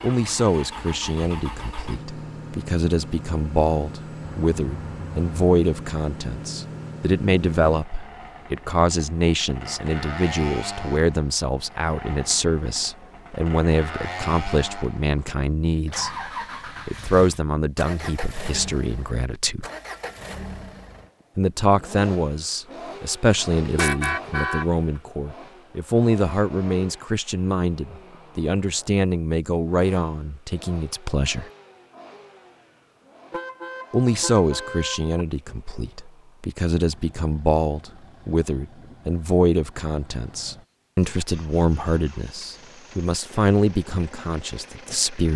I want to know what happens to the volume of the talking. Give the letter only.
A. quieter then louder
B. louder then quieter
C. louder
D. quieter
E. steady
E.